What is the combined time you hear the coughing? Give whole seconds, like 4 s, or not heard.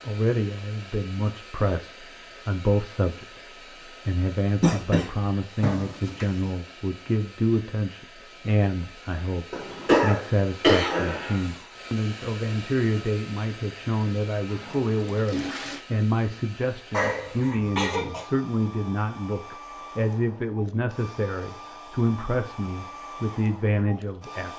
4 s.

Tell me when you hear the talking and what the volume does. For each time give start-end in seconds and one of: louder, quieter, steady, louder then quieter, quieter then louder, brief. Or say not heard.
0.1-24.5 steady.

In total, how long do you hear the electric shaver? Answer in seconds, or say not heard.
not heard.